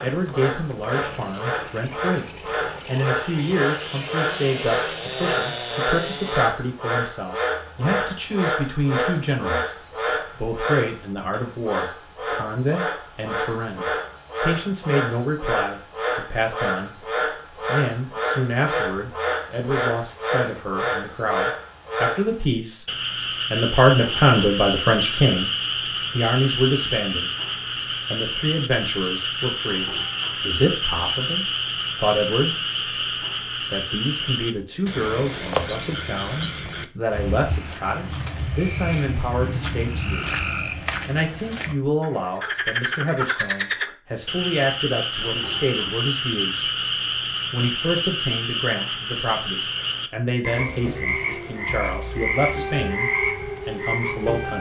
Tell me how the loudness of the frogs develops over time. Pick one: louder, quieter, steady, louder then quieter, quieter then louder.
steady.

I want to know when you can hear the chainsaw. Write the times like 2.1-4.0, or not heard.
0.1-6.5.